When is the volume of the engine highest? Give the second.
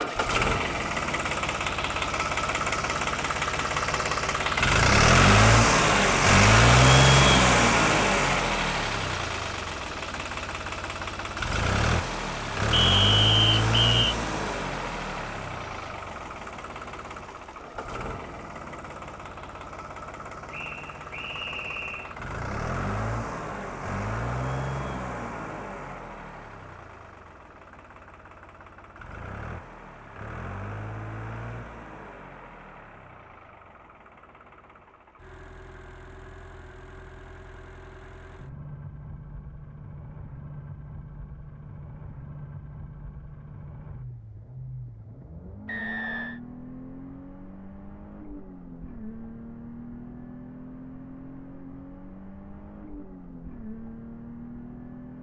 7 s.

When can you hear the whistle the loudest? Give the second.
13 s.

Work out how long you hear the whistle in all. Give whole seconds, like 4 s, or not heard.
4 s.